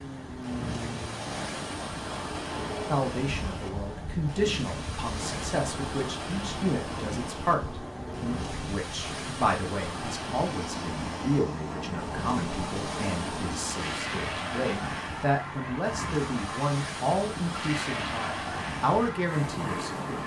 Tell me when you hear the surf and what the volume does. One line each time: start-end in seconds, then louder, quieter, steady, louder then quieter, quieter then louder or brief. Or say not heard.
0.0-20.2 steady.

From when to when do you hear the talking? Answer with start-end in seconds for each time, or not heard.
2.9-20.2.